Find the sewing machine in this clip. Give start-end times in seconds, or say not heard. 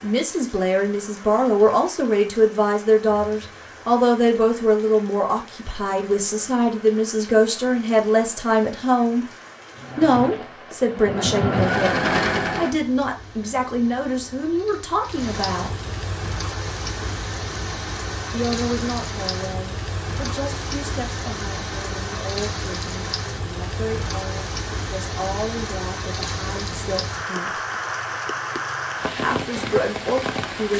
9.8-12.8.